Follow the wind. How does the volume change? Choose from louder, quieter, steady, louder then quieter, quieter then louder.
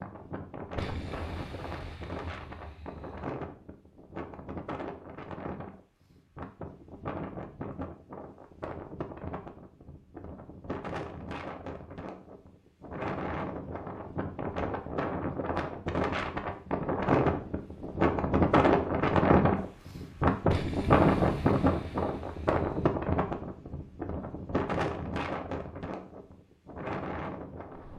louder then quieter.